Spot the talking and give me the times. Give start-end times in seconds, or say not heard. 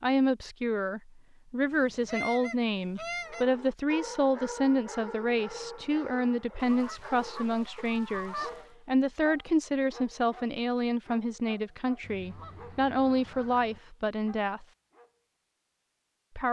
0.0-14.7.